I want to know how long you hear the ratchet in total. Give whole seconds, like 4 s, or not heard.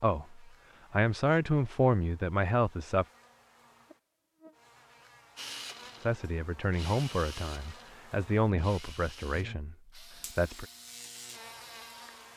not heard.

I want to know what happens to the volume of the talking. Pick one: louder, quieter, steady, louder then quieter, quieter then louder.
quieter.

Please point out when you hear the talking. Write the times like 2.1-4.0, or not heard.
0.0-3.0, 6.0-10.7.